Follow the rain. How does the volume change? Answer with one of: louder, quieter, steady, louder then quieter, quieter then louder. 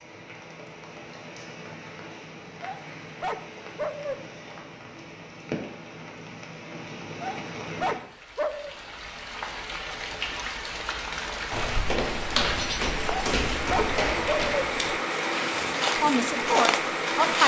louder.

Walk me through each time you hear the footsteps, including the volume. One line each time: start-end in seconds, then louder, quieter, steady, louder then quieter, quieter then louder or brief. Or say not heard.
11.5-17.4 steady.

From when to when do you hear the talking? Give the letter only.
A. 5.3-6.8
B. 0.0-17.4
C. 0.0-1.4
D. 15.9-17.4
D.